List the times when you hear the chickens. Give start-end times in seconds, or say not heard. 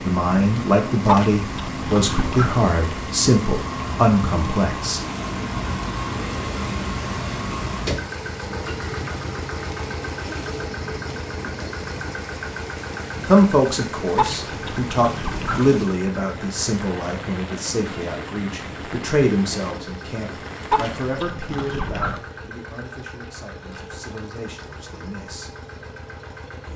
1.1-2.6, 14.2-15.8, 20.7-22.2.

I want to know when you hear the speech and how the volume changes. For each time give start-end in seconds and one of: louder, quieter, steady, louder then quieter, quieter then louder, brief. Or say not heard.
0.1-5.0 steady
13.2-25.5 quieter.